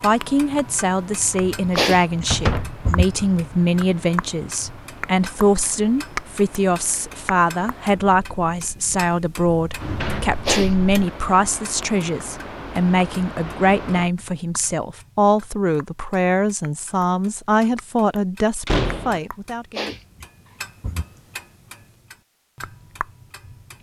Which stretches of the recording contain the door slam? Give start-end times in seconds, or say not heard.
2.3-2.7, 9.6-11.1, 18.6-19.2.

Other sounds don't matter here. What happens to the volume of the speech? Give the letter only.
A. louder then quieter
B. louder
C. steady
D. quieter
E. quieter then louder
C.